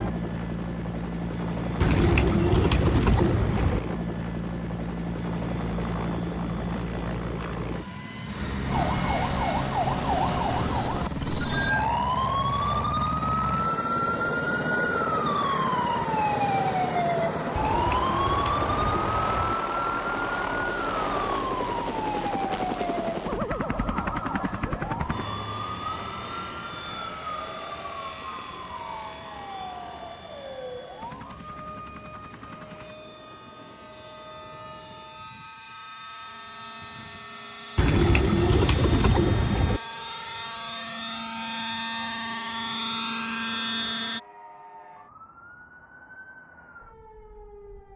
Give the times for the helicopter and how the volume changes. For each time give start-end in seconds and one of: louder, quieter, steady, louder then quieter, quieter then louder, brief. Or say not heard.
0.0-44.2 quieter then louder.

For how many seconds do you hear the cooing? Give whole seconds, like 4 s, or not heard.
6 s.